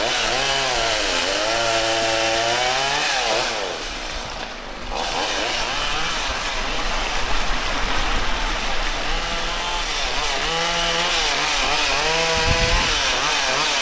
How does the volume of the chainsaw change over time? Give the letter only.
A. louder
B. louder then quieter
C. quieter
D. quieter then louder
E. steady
D.